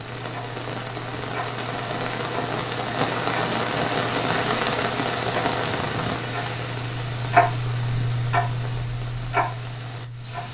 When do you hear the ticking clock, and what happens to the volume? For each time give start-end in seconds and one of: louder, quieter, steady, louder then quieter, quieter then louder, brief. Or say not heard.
0.0-10.4 louder.